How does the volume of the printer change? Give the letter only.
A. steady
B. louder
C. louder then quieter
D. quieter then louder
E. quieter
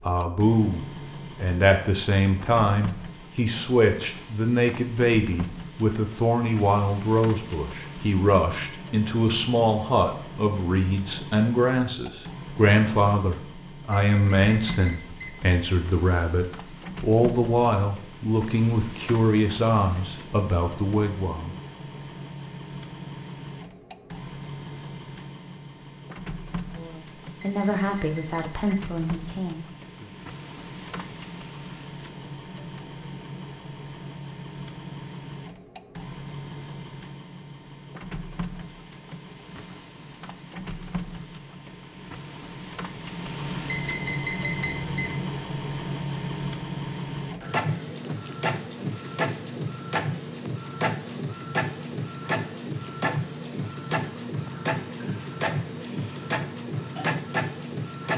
B.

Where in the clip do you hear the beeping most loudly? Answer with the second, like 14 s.
44 s.